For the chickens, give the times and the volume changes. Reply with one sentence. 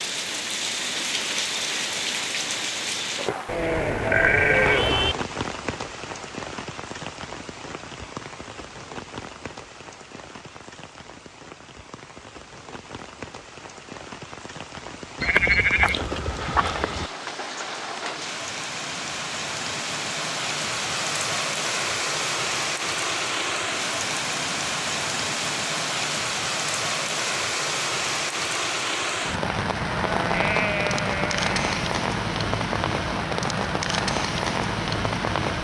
The chickens can't be heard in this clip.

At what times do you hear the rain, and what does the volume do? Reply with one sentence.
The rain can be heard from 0.0 to 35.5 s, getting quieter then louder.